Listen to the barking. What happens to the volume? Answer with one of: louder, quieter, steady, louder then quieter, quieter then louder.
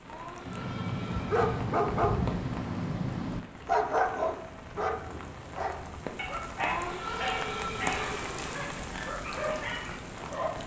quieter.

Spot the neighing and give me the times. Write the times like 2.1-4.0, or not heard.
0.1-1.4, 6.5-8.6.